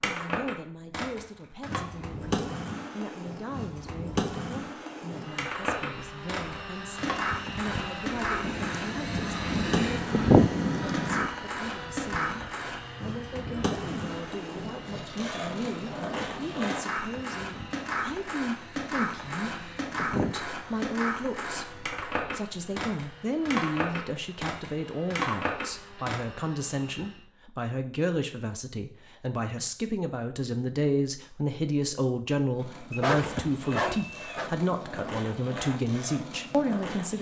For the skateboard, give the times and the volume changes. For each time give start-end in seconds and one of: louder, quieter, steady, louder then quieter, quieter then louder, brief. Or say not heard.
0.0-26.2 steady
32.5-37.1 steady.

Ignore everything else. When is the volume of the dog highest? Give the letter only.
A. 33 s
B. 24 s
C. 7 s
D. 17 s
A.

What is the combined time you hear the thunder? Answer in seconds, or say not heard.
3 s.